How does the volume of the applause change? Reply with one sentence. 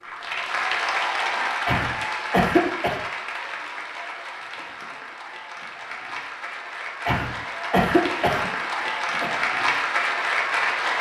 The volume of the applause goes down, then up.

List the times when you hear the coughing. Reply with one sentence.
You can hear the coughing from 1.6 to 3.0 s and from 7.0 to 9.3 s.